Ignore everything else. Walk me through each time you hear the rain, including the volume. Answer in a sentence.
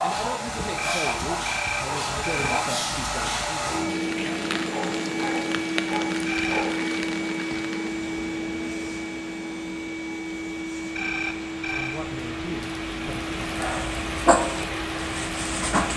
You can hear the rain from 3.9 to 15.9 s, getting quieter then louder.